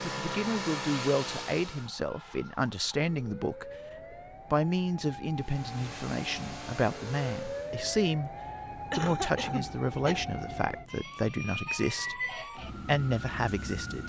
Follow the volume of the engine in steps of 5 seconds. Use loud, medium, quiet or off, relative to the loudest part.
loud, medium, off.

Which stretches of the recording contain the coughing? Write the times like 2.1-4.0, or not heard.
8.9-10.2.